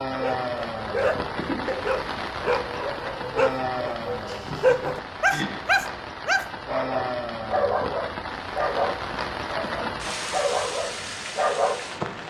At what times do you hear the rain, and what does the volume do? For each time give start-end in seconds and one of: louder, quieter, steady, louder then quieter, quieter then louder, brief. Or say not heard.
0.0-12.2 steady.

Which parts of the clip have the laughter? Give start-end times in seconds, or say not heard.
1.3-2.0, 4.2-5.5, 9.4-10.3.